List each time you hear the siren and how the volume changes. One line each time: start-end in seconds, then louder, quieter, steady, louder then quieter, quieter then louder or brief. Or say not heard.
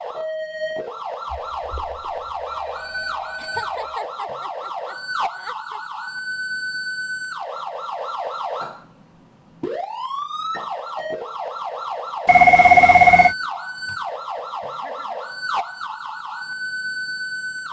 0.0-17.6 steady.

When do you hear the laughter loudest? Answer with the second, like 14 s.
4 s.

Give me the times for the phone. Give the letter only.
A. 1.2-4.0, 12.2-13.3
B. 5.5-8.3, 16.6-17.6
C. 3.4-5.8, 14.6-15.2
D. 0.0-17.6
A.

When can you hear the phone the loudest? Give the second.
13 s.